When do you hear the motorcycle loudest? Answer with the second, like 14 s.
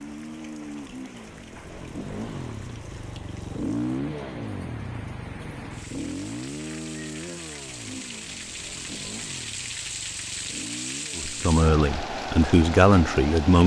4 s.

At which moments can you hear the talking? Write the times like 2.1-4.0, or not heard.
11.2-13.6.